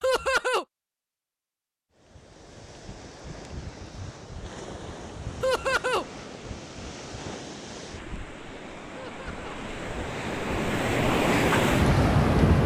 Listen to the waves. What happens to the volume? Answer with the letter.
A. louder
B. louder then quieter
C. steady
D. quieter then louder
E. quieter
A.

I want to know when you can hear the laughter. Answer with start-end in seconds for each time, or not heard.
0.0-0.7, 5.4-6.0, 8.9-9.6.